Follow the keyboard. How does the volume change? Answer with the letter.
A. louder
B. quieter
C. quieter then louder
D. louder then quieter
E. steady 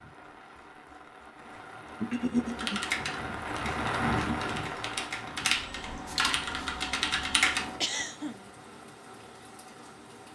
C.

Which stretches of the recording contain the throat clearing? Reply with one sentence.
You can hear the throat clearing from 2.0 to 2.8 s and from 7.8 to 8.4 s.